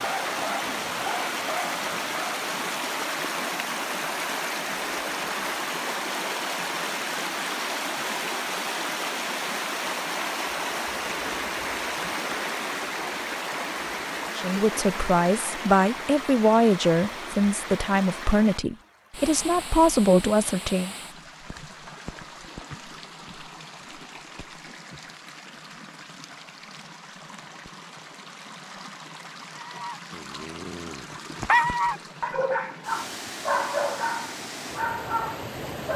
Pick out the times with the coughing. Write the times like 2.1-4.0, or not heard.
not heard.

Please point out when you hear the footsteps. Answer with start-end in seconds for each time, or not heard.
not heard.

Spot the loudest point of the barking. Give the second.
32 s.